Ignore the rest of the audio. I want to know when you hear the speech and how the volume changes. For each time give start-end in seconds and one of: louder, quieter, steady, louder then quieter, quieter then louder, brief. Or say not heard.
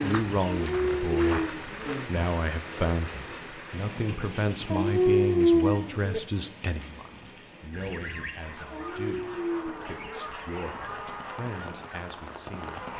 0.0-12.9 quieter.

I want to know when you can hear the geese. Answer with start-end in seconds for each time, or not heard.
7.7-12.9.